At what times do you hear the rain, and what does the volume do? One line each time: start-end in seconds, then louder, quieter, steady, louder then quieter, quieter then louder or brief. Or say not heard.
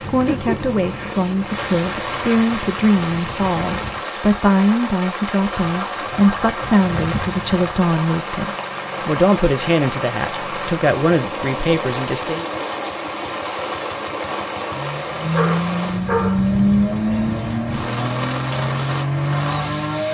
0.0-20.0 steady.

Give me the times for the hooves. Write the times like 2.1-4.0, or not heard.
not heard.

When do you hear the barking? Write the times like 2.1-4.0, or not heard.
15.3-16.5.